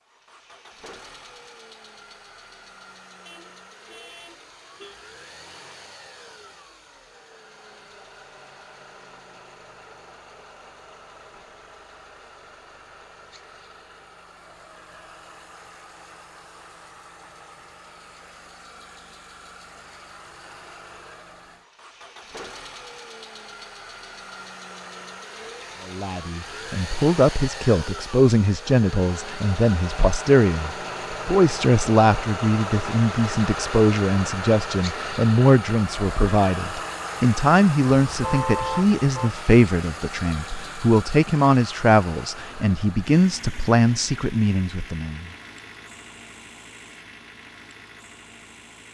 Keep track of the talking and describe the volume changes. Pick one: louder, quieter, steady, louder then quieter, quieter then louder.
steady.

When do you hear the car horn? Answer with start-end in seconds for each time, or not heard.
3.2-5.0, 38.0-39.4.